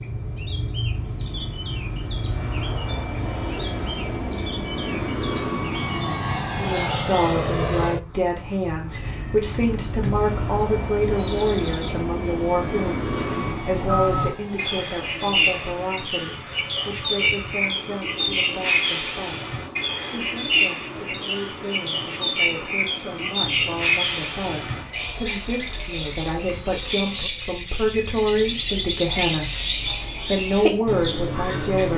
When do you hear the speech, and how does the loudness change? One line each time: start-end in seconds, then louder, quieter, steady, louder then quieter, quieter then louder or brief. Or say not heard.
6.5-31.9 quieter then louder.